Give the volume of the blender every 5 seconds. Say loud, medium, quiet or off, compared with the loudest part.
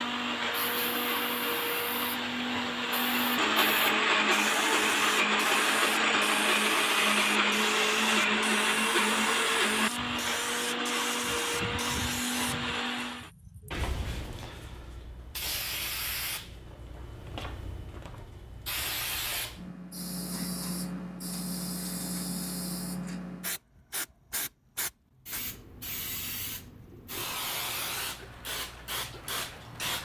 loud, loud, medium, off, off, off.